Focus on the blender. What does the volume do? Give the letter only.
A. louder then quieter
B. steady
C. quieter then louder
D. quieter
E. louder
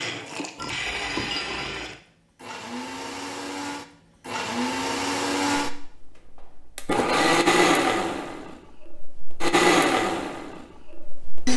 E.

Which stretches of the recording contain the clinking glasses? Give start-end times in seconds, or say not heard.
0.6-1.9.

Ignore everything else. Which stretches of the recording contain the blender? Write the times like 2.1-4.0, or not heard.
0.0-11.5.